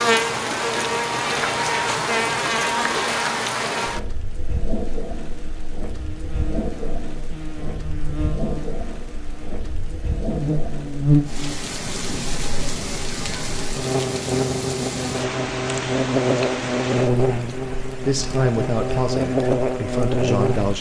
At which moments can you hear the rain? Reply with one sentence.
You can hear the rain from 0.0 to 20.7 s.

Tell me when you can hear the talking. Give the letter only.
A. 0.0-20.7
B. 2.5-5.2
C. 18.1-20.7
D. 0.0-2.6
C.